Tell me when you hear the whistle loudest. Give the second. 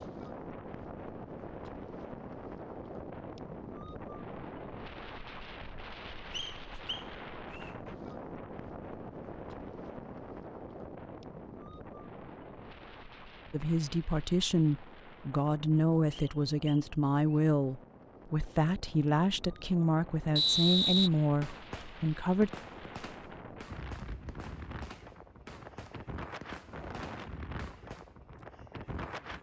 21 s.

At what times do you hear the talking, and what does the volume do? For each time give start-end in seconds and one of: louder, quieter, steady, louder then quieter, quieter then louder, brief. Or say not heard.
13.5-22.5 steady.